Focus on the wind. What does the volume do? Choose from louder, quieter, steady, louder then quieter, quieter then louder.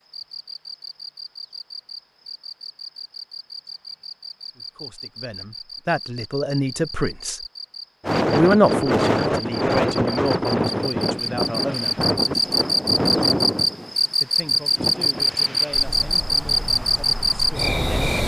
quieter.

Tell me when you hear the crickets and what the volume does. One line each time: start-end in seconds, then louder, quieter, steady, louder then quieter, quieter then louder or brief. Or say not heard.
0.0-18.2 louder.